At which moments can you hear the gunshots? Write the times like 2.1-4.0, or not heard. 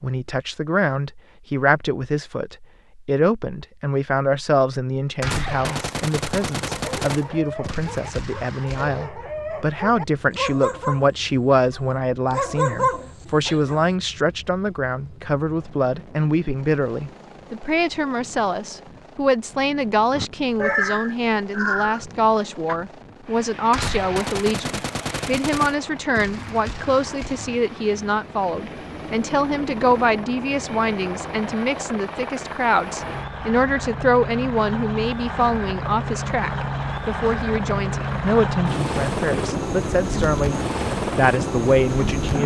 5.2-9.1, 23.7-27.6.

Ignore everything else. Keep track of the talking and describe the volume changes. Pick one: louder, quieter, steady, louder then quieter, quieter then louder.
steady.